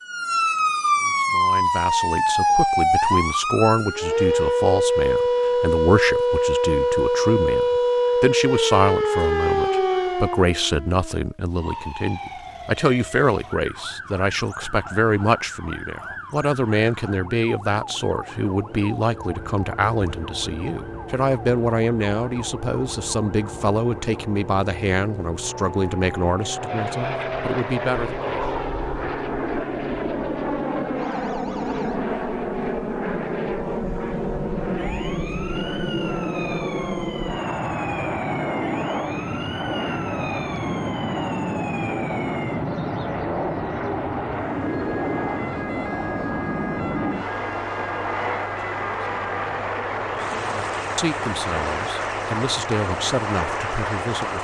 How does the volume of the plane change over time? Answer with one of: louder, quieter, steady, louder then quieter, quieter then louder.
louder.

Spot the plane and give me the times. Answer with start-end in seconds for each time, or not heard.
19.2-54.3.